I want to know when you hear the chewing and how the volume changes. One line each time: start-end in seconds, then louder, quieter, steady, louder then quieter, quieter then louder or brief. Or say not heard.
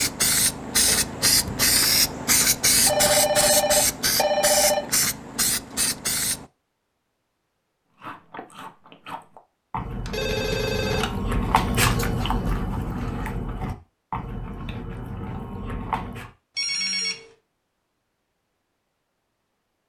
8.0-16.3 louder then quieter.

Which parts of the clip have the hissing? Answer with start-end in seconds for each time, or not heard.
0.0-6.5.